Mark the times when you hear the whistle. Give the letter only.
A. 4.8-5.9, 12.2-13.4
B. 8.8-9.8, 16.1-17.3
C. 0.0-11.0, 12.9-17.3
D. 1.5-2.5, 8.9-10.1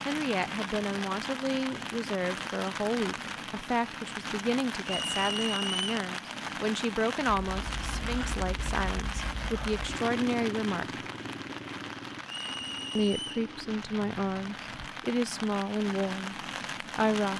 A.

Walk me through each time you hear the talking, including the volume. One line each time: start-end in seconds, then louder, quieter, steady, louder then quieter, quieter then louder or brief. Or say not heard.
0.0-11.0 steady
12.9-17.3 quieter.